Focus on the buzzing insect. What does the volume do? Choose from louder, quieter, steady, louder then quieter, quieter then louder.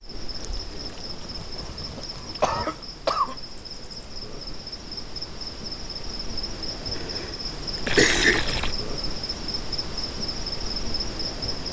louder.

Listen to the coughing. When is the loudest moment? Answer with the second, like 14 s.
8 s.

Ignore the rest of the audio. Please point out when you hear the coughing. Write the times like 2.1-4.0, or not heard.
1.6-3.4, 7.0-8.4.